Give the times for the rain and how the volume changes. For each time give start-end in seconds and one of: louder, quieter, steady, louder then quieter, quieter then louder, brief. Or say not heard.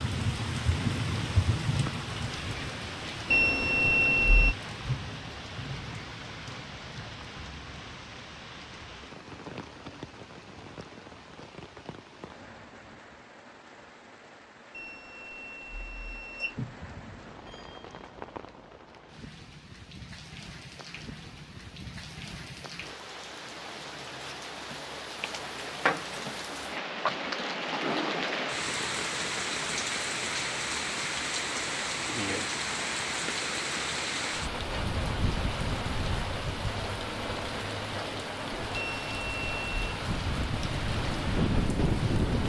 0.0-42.4 quieter then louder.